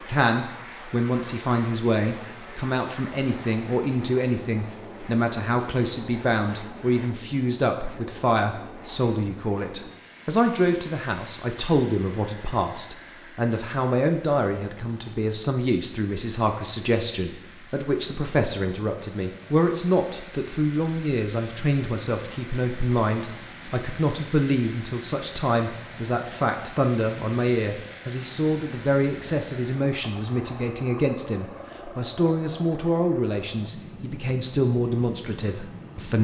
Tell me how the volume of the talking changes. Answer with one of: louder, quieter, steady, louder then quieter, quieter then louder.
steady.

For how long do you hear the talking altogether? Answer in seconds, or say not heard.
36 s.